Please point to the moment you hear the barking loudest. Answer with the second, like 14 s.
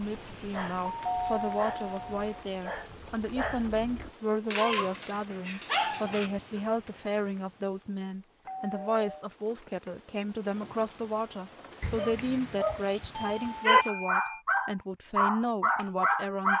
14 s.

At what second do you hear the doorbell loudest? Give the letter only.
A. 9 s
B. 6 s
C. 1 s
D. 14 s
C.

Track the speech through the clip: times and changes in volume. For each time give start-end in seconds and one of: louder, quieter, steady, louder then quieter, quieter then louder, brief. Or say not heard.
0.0-16.5 steady.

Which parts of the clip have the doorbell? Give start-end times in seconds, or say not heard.
0.8-2.5, 8.4-9.2, 13.3-14.4.